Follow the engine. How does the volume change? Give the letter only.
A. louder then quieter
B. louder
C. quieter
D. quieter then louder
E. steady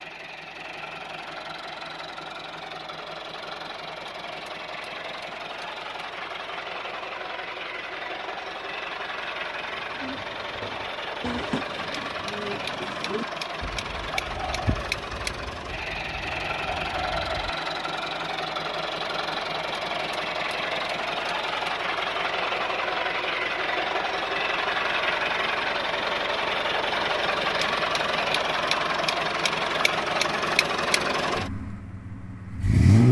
B.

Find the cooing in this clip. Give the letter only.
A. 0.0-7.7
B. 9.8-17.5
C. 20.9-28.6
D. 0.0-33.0
B.